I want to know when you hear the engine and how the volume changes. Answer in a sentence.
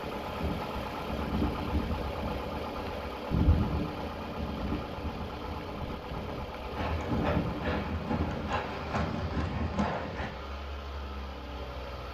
You can hear the engine from 0.0 to 12.0 s, getting quieter.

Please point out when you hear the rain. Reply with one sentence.
The rain can't be heard in this clip.